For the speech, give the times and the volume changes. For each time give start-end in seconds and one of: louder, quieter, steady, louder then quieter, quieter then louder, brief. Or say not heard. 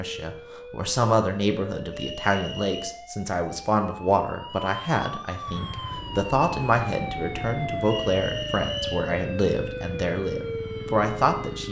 0.0-11.6 steady.